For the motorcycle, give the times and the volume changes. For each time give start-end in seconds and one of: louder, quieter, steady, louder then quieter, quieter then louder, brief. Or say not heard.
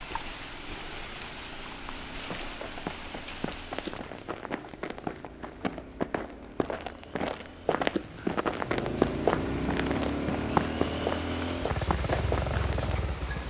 0.0-13.4 louder.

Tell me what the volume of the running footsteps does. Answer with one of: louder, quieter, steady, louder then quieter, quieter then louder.
louder.